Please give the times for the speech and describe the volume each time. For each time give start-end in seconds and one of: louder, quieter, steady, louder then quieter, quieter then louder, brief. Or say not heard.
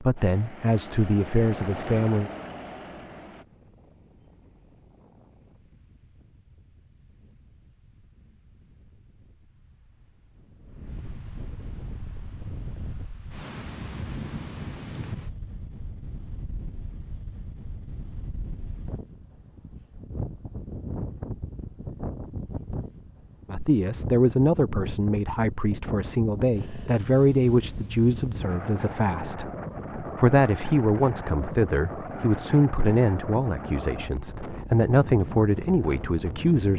0.0-2.3 brief
23.4-36.7 steady.